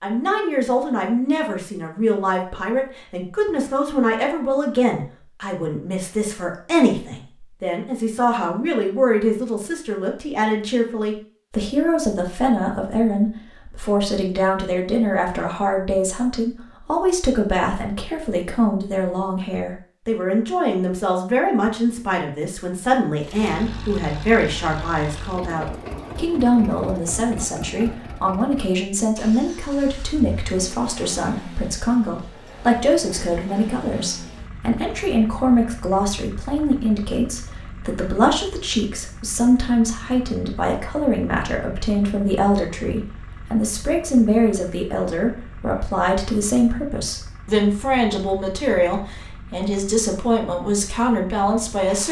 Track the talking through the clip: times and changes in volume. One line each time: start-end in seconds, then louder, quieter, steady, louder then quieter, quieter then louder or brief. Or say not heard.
0.0-52.0 steady.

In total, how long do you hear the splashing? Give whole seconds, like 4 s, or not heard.
not heard.